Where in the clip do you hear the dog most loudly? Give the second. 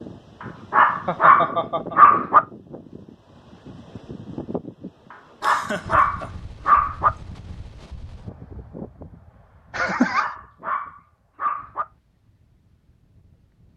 2 s.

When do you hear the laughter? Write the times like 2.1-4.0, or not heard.
1.1-2.0, 5.4-6.3, 9.7-10.2.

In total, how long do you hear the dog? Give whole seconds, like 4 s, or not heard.
6 s.